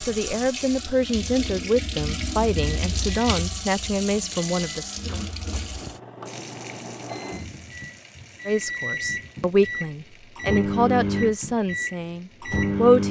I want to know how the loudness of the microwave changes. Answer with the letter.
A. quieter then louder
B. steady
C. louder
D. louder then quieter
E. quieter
C.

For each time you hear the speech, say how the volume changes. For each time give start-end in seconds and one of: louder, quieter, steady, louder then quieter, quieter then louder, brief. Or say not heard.
0.0-5.0 steady
8.4-13.0 quieter.